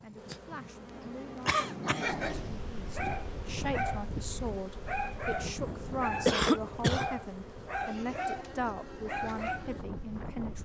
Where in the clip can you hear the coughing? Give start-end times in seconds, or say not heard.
0.2-2.2, 6.2-7.1.